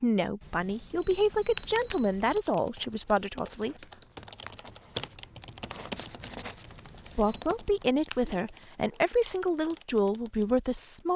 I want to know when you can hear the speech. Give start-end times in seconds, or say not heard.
0.0-3.8, 7.2-11.1.